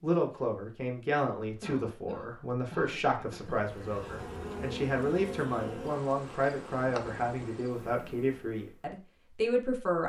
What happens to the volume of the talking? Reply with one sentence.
The volume of the talking stays about the same.